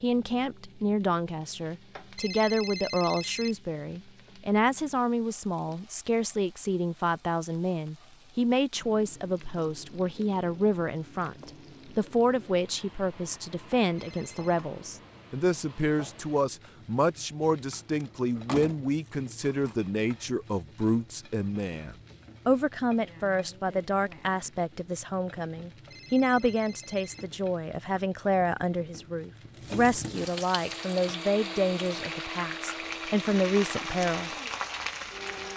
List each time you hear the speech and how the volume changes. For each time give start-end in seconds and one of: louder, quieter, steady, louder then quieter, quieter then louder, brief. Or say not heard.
0.0-34.3 steady.